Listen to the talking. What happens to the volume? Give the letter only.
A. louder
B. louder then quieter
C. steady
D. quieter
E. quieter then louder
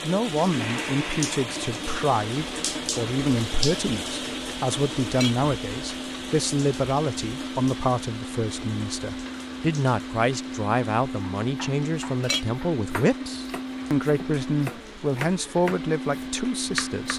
C.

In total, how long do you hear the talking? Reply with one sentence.
The talking can be heard for 17 seconds in total.